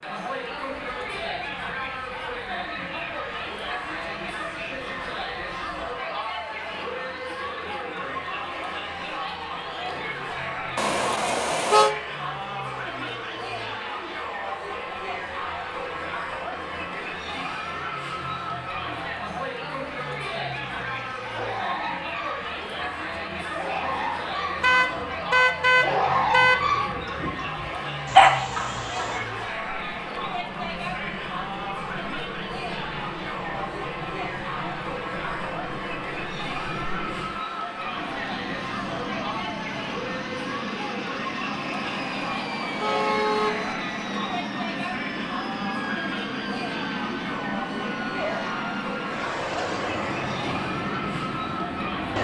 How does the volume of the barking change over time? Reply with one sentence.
The loudness of the barking goes up.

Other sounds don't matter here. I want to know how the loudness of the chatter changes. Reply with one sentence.
The volume of the chatter stays about the same.